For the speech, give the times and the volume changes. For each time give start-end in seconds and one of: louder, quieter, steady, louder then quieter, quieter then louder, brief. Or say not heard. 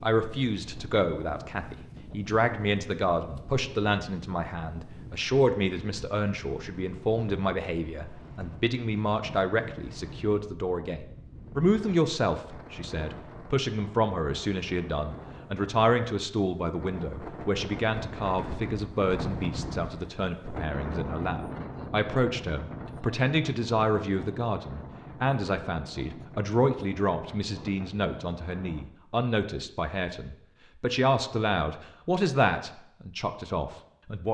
0.0-34.3 steady.